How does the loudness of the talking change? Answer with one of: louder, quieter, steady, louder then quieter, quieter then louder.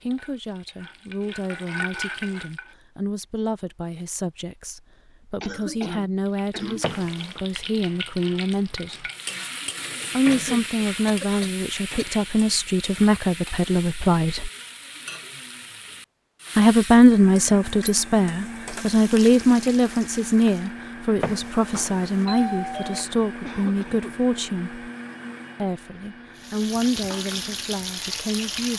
louder then quieter.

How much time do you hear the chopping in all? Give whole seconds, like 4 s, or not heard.
not heard.